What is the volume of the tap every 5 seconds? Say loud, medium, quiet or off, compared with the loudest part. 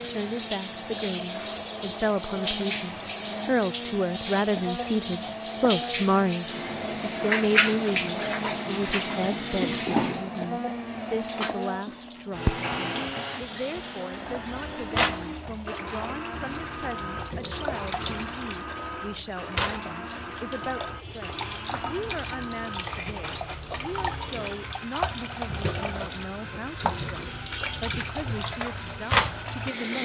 loud, loud, medium, medium, medium, loud.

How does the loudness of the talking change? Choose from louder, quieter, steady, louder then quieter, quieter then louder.
quieter.